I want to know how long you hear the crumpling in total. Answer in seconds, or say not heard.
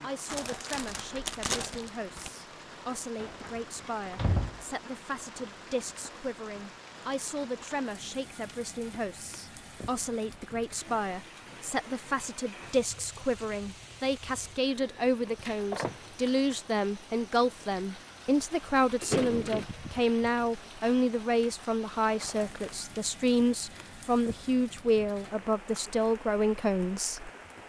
3 s.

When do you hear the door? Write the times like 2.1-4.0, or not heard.
3.1-4.7, 15.2-16.1, 19.0-19.6.